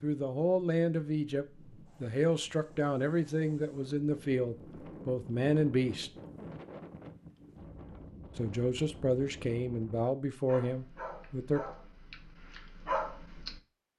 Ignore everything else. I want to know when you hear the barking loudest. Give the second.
13 s.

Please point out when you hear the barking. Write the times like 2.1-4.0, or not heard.
10.4-13.9.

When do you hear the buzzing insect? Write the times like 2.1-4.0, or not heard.
not heard.